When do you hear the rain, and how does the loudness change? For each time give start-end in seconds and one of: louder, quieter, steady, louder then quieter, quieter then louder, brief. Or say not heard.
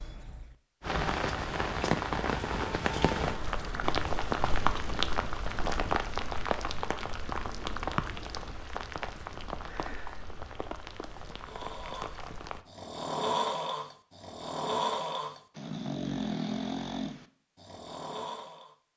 0.0-12.7 quieter.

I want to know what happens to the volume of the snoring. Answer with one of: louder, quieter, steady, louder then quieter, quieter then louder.
louder then quieter.